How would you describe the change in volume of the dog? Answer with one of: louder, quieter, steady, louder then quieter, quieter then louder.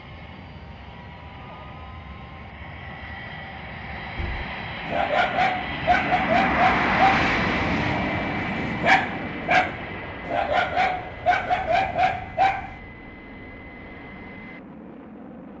steady.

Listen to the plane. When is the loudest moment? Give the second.
7 s.